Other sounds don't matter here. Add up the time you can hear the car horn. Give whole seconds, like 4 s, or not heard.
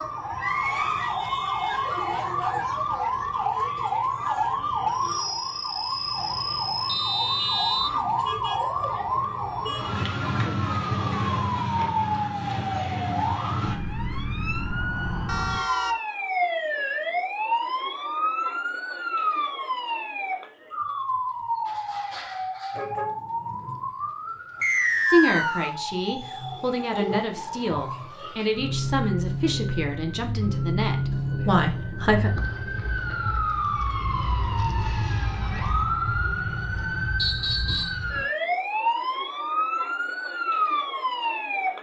2 s.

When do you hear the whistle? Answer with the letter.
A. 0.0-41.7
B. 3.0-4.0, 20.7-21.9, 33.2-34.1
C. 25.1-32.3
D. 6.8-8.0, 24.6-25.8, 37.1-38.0
D.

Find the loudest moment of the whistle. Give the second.
25 s.